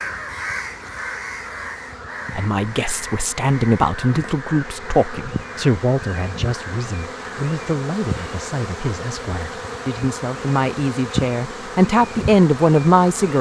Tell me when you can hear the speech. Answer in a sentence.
The speech can be heard from 2.4 to 13.3 s.